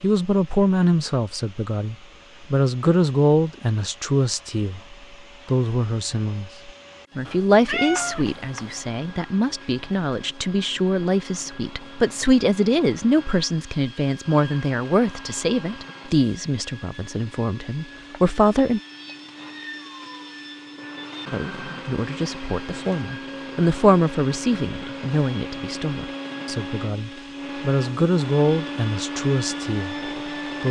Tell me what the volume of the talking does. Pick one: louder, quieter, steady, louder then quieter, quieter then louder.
steady.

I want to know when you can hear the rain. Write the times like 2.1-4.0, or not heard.
not heard.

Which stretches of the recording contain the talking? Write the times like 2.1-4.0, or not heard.
0.0-18.8, 21.3-30.6.